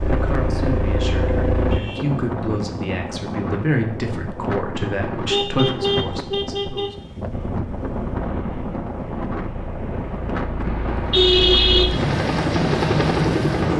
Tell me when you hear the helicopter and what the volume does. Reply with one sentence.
The helicopter can be heard briefly from 0.0 to 1.8 s; and from 7.3 to 13.7 s, getting louder.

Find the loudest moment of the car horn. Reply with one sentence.
The volume of the car horn peaks at 11 seconds.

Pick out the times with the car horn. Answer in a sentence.
You can hear the car horn from 1.7 to 2.7 s, from 5.3 to 6.9 s and from 10.7 to 11.9 s.